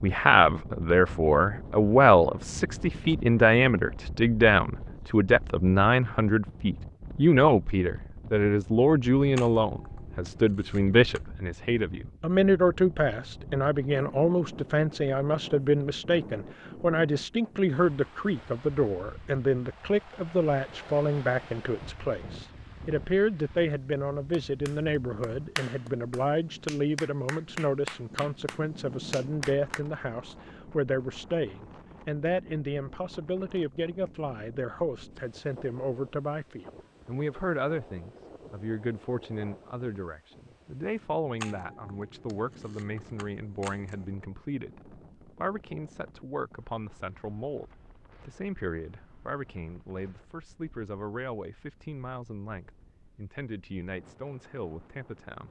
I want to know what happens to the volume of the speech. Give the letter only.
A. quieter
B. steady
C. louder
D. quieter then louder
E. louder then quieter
A.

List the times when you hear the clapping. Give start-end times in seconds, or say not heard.
24.3-29.8.